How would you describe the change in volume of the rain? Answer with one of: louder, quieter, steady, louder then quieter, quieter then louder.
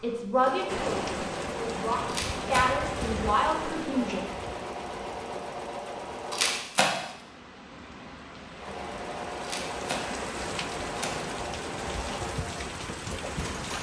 quieter then louder.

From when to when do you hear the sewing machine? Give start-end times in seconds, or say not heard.
0.0-6.7, 8.6-13.7.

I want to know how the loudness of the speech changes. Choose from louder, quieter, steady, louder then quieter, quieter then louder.
quieter then louder.